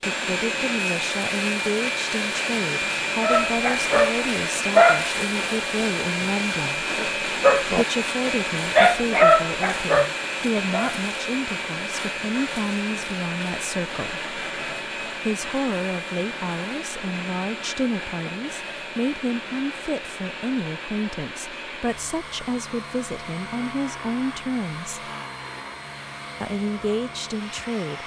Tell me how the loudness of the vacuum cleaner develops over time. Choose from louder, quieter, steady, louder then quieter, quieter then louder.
quieter.